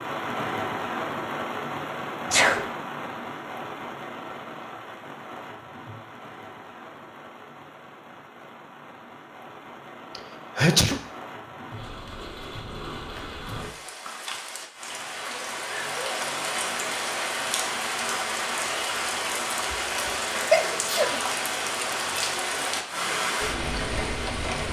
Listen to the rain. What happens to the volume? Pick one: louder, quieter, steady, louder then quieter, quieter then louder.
quieter then louder.